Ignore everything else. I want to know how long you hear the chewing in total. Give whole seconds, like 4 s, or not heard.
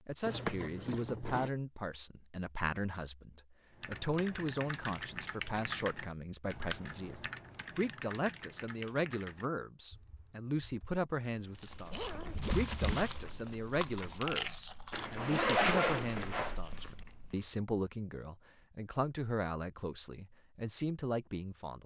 6 s.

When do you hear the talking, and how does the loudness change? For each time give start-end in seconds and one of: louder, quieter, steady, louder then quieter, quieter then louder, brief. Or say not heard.
0.1-21.8 steady.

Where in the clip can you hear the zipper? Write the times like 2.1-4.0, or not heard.
0.2-1.5, 11.9-12.7, 14.9-16.6.